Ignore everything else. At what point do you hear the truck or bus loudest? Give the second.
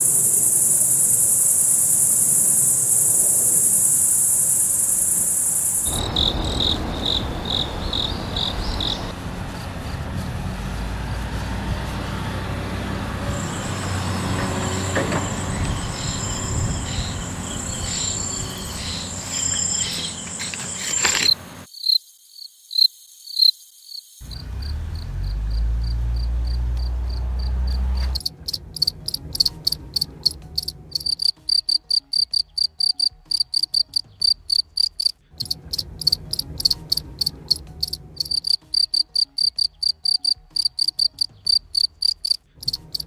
15 s.